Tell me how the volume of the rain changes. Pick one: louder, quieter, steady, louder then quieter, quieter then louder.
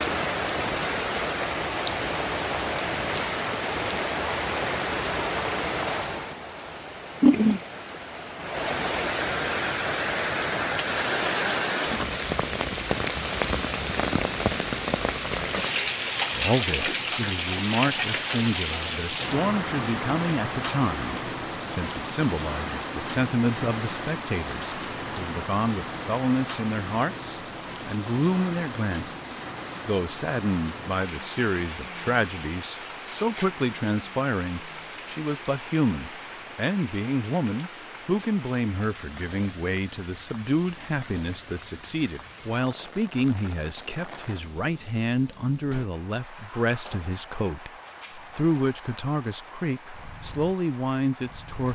quieter.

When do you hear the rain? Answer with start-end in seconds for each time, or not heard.
0.0-51.6.